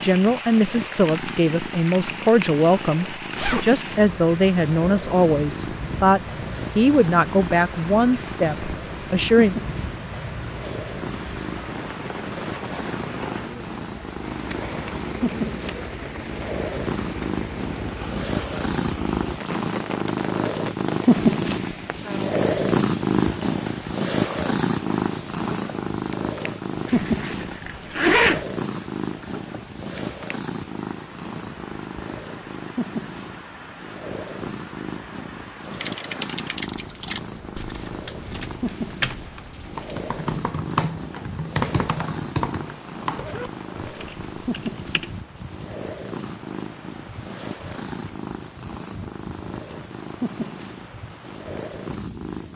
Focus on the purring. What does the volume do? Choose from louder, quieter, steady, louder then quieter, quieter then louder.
louder then quieter.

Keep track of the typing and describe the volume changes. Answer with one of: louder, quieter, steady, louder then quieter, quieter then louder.
louder then quieter.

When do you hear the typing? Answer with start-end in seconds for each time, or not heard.
35.6-45.2.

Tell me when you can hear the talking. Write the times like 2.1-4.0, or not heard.
0.0-9.6.